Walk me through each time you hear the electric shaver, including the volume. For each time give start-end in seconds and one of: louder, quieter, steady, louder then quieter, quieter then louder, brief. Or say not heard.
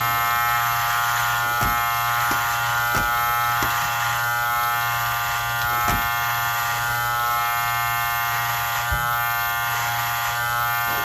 0.0-11.0 steady.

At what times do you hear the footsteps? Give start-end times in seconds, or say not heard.
not heard.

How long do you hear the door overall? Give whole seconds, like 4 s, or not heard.
3 s.